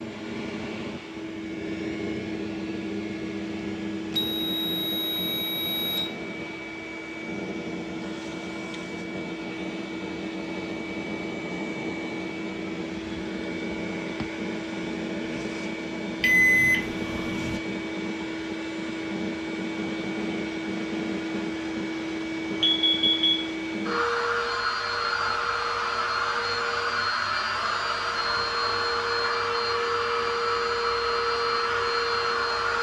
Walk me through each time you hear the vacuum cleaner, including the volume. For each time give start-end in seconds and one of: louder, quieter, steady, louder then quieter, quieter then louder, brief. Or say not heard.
0.0-32.7 louder.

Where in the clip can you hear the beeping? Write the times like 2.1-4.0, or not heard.
4.2-6.0, 16.2-17.6, 22.6-23.5.